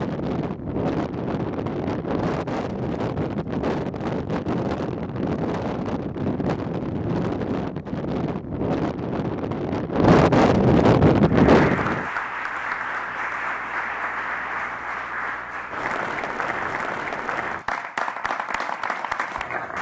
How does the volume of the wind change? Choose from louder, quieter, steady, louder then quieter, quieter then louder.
louder.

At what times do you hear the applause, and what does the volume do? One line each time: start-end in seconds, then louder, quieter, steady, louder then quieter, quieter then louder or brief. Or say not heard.
11.2-19.7 steady.